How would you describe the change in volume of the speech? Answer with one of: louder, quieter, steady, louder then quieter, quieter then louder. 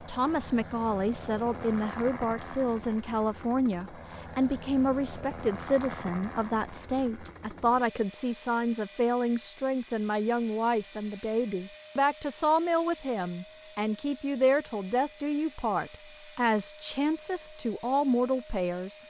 steady.